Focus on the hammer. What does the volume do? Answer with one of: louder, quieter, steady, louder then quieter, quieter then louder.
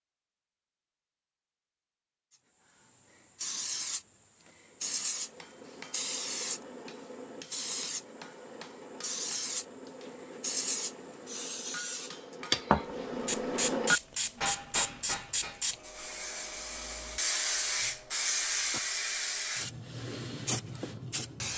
louder.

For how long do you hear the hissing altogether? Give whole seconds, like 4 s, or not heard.
19 s.